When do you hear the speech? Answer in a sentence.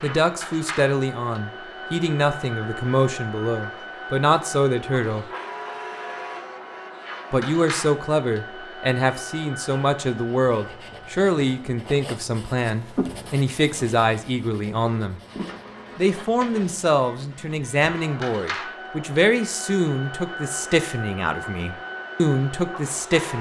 The speech can be heard from 0.0 to 5.2 s, from 7.3 to 15.2 s and from 15.9 to 23.3 s.